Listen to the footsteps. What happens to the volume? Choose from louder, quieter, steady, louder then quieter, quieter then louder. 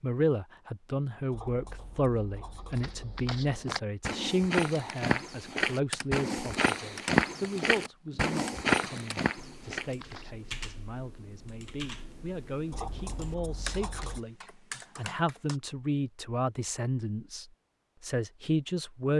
louder.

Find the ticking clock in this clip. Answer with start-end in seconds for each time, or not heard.
not heard.